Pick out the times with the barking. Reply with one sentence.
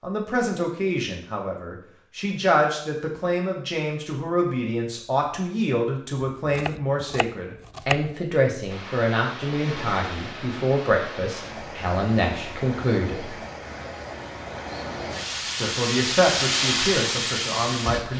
You can't hear the barking here.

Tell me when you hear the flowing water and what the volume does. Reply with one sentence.
The flowing water can be heard from 8.7 to 18.1 s, getting louder.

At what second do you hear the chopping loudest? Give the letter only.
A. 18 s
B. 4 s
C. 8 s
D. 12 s
C.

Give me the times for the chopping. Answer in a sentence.
You can hear the chopping from 6.5 to 8.1 s.